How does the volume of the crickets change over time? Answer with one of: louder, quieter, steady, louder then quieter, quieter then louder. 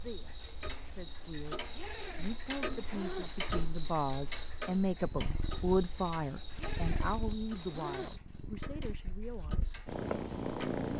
steady.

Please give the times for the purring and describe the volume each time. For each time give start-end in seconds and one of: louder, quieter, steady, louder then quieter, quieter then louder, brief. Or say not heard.
4.9-10.9 quieter then louder.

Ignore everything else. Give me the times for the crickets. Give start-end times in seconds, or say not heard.
0.0-8.2.